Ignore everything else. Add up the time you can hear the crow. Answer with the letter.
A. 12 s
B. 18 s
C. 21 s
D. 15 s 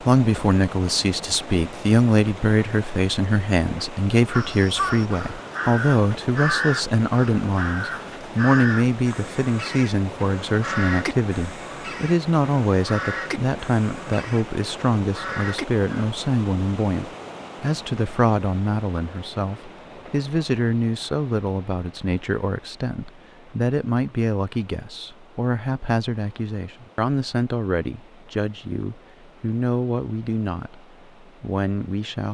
A.